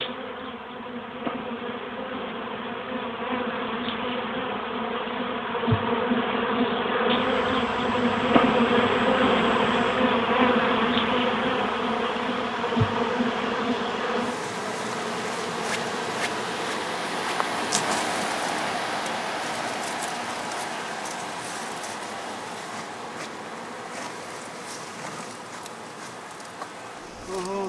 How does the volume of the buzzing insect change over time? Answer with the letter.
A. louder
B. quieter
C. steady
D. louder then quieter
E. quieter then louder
D.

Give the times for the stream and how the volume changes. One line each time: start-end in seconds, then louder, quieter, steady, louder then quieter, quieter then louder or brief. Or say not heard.
7.1-27.6 louder then quieter.